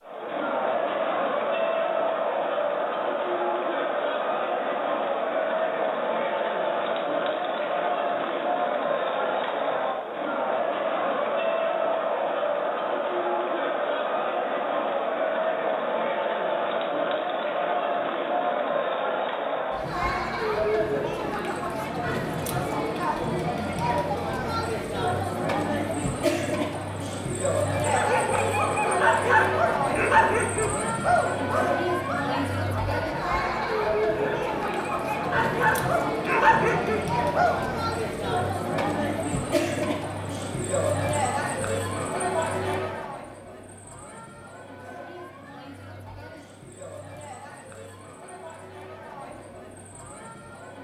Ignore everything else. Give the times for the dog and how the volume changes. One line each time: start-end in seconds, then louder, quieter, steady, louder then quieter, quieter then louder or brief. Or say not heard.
27.8-37.6 quieter then louder.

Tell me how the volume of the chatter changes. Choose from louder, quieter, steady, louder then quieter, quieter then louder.
quieter.